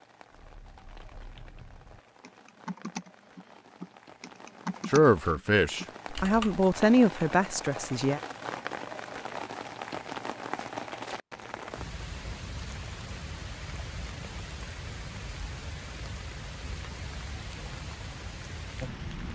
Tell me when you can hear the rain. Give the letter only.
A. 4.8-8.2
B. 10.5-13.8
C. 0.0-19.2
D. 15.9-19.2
C.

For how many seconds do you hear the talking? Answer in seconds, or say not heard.
3 s.